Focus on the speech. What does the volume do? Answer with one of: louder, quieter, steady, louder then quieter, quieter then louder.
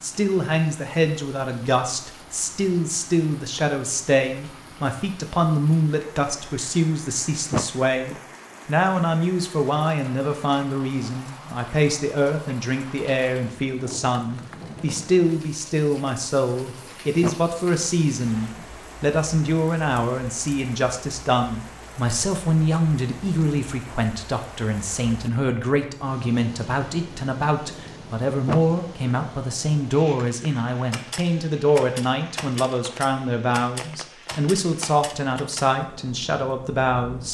steady.